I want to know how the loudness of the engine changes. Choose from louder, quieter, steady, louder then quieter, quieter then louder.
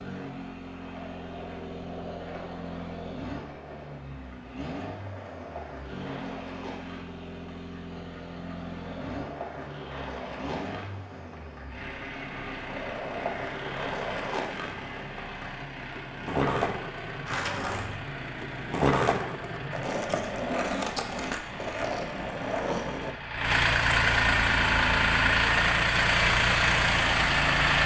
louder.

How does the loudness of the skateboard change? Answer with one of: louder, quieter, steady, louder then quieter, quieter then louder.
louder.